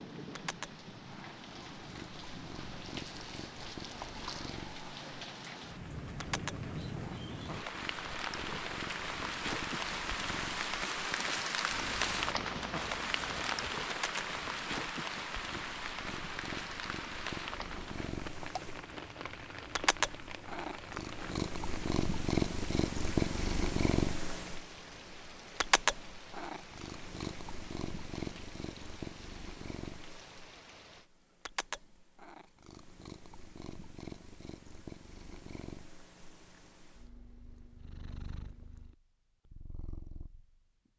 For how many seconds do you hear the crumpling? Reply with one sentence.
You can hear the crumpling for 2 seconds altogether.